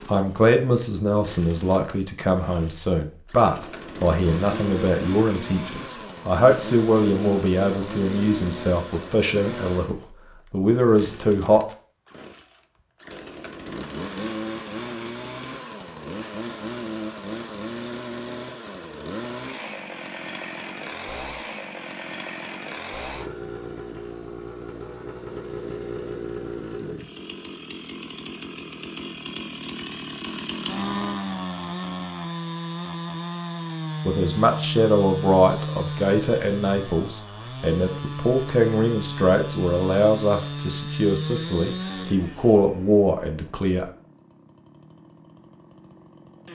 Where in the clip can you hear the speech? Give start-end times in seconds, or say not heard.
0.1-11.8, 34.0-43.9.